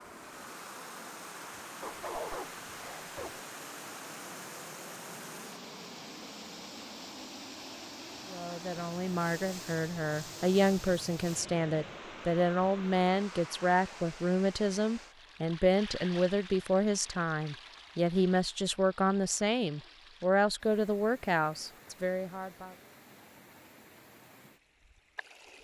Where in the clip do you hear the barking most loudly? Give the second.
2 s.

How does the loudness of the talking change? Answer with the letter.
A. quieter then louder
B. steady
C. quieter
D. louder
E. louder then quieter
B.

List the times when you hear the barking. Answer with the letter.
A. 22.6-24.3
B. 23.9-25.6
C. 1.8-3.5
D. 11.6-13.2
C.